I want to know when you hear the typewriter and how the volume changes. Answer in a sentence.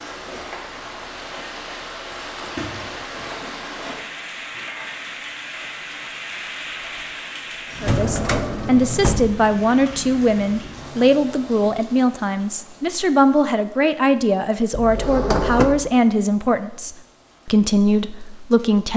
You can't hear the typewriter here.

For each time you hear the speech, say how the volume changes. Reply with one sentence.
You can hear the speech from 7.8 to 18.9 s, at a steady volume.